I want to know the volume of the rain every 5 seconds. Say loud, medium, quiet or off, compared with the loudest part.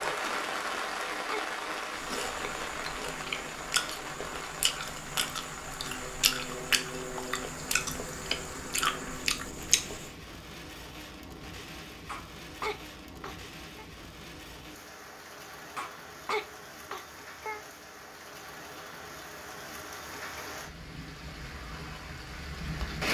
loud, medium, medium, medium, loud.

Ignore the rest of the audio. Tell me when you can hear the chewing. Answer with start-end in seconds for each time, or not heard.
1.9-10.1.